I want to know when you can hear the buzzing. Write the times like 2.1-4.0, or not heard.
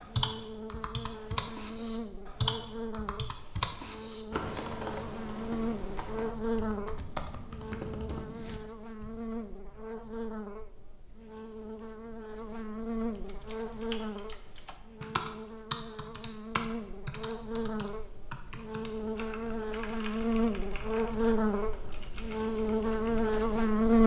0.0-24.0.